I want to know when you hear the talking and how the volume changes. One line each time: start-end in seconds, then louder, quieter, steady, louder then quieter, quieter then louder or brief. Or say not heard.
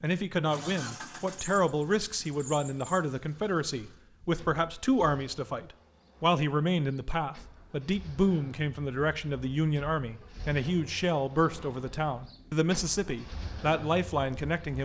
0.0-14.8 steady.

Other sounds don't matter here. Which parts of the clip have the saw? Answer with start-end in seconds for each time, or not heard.
not heard.